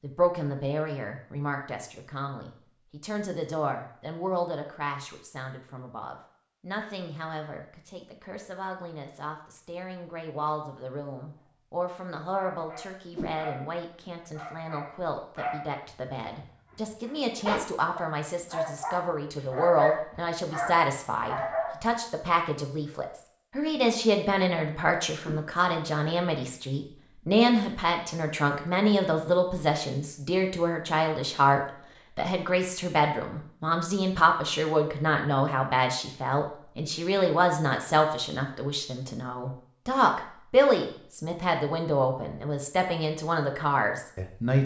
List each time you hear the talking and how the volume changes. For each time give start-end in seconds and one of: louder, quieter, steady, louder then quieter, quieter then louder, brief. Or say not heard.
0.0-44.6 louder.